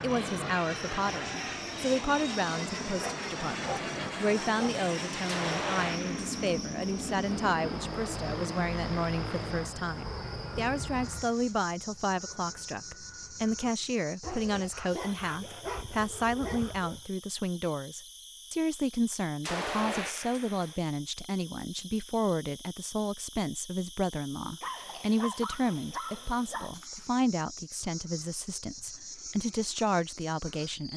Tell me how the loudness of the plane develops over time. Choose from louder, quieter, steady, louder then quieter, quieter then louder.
quieter.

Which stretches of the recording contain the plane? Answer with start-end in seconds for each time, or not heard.
0.0-13.8.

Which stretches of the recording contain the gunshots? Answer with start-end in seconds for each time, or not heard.
5.2-6.4, 19.4-20.8.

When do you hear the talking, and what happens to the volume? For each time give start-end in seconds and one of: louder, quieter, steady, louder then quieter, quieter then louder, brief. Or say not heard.
0.0-30.9 steady.